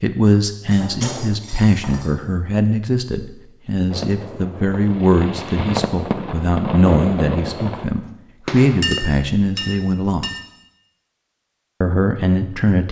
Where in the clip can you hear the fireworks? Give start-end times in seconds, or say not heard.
3.9-9.8.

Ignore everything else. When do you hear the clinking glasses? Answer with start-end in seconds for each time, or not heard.
0.7-2.1, 8.8-10.4.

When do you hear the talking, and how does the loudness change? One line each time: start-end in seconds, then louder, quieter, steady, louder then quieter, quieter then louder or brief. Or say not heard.
0.0-10.3 steady
11.8-12.8 brief.